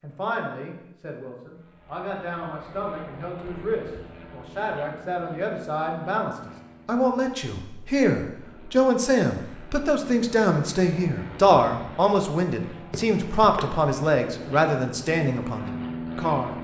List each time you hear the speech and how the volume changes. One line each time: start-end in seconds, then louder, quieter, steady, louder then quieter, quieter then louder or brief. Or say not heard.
0.0-16.5 louder.